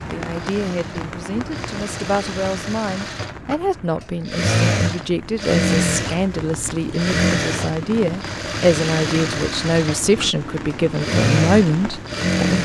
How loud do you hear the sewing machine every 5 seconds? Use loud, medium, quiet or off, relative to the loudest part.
medium, loud, loud.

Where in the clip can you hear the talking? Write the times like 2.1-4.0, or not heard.
0.1-12.5.